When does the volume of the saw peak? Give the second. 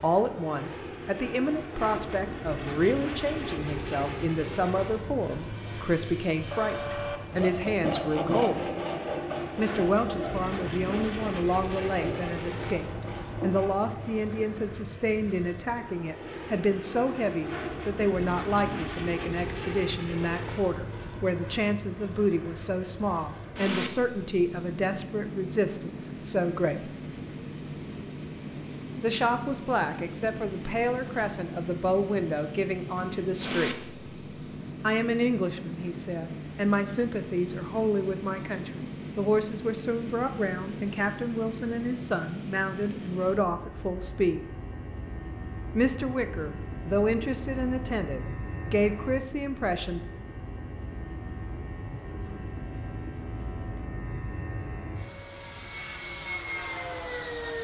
8 s.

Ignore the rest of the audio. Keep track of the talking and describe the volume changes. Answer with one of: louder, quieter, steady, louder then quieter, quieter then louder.
steady.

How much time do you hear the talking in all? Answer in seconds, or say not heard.
45 s.